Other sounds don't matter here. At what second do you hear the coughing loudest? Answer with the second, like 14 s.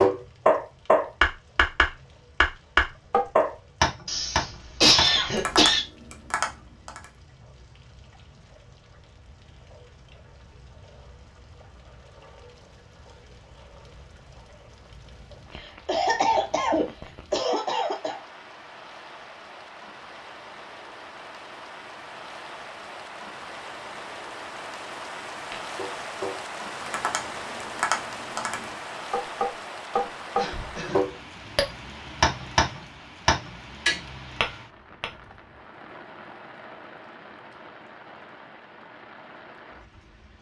5 s.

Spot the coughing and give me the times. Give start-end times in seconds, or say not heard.
4.0-5.8, 15.8-18.2, 29.9-31.1.